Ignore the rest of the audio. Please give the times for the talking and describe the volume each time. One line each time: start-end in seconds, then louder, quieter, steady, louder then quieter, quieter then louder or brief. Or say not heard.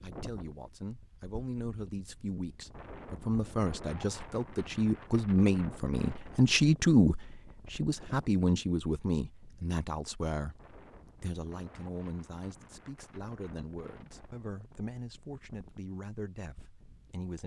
0.0-17.4 louder then quieter.